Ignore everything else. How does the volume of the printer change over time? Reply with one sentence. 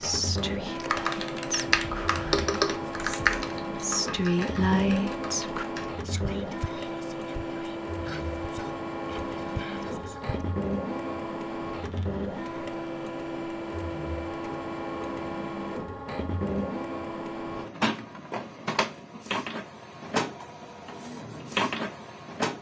The volume of the printer stays about the same.